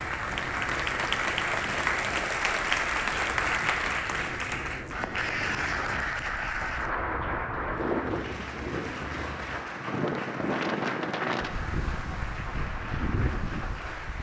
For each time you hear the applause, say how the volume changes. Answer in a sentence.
You can hear the applause from 0.0 to 14.1 s, getting quieter.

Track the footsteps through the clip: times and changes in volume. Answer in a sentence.
The footsteps can't be heard in this clip.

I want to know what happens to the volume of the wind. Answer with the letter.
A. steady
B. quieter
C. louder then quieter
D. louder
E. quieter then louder
D.